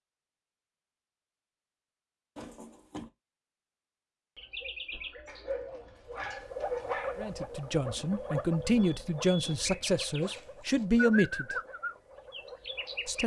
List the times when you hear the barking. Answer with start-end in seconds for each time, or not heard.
5.2-7.4.